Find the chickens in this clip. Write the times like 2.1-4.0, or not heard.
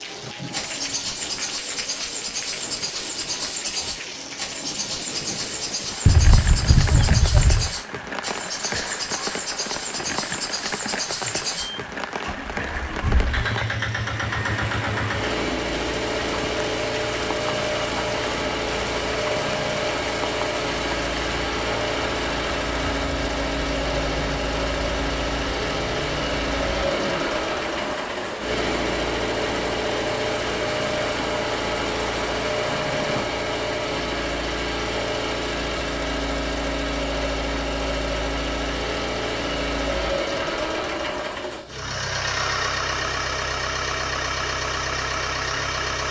6.0-7.7.